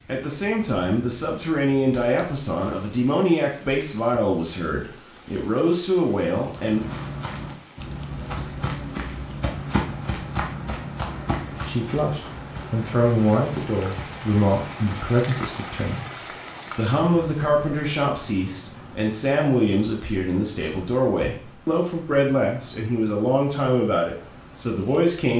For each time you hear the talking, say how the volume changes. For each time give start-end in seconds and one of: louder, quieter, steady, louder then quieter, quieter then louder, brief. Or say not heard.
0.1-6.8 steady
11.7-25.3 steady.